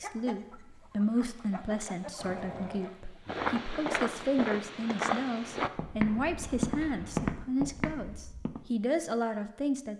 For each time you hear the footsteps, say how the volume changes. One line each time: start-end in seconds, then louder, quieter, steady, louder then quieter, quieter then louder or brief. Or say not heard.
0.9-8.7 louder.